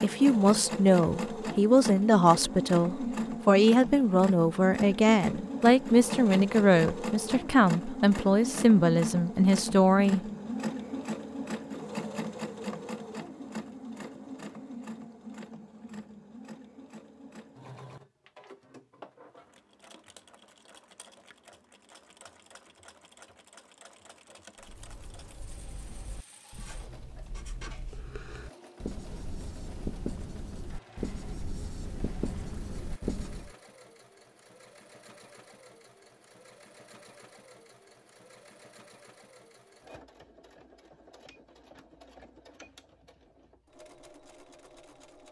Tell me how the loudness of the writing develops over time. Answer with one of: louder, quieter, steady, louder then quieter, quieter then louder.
louder.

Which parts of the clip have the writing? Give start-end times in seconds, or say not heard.
24.6-33.5.